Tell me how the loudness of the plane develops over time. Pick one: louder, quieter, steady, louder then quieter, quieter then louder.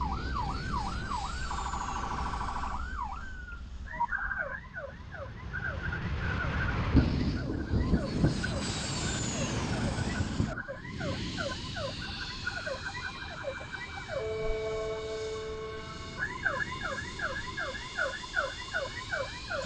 louder then quieter.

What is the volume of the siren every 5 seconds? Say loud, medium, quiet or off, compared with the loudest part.
loud, medium, loud, loud.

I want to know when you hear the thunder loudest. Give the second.
7 s.